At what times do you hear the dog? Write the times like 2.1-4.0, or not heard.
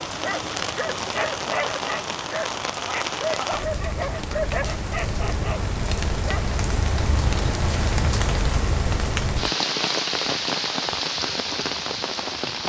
0.1-6.5.